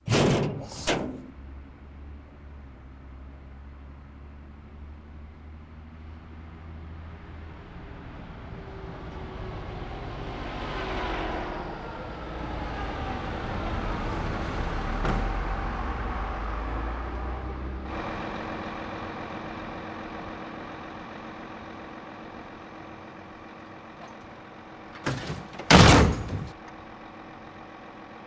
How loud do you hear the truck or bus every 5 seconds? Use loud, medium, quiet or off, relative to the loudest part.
quiet, medium, loud, loud, medium, medium.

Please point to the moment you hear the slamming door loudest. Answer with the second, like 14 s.
26 s.